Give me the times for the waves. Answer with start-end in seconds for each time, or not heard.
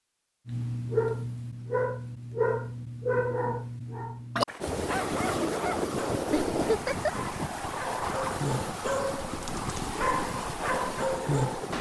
4.6-11.7.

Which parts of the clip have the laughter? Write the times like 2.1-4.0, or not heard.
6.3-7.1.